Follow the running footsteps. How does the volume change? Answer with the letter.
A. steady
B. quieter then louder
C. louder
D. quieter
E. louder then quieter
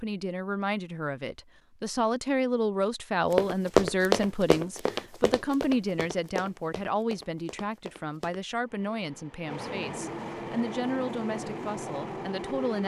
D.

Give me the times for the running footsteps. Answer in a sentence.
The running footsteps can be heard from 3.3 to 8.4 s.